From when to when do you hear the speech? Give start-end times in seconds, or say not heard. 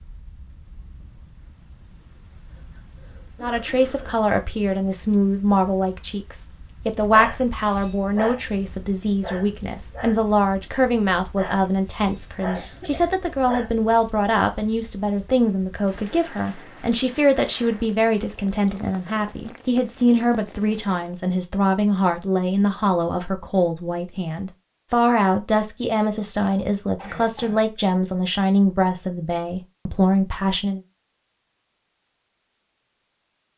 3.4-30.8.